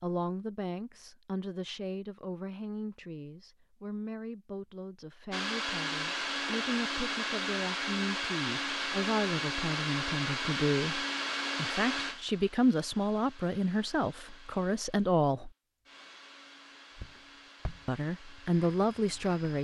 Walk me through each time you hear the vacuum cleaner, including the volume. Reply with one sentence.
The vacuum cleaner can be heard from 5.3 to 19.5 s, getting quieter.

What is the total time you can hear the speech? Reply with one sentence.
You can hear the speech for 17 seconds altogether.